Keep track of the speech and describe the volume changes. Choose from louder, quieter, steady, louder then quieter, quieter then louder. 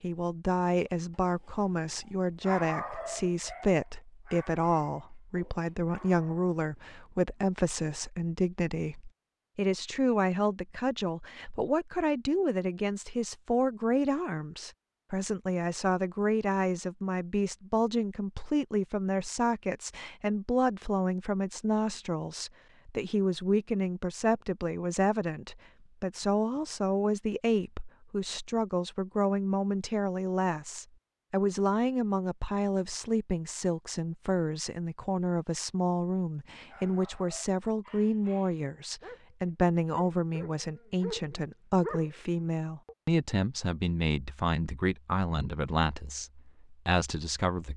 steady.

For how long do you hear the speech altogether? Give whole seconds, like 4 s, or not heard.
48 s.